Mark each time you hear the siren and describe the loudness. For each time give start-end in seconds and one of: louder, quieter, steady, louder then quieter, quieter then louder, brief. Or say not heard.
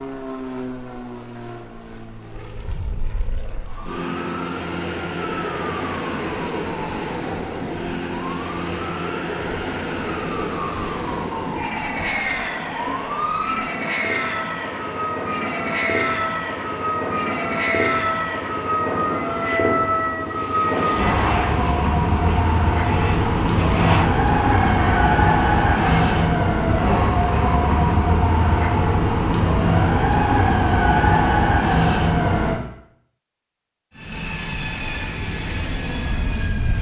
3.3-32.5 louder.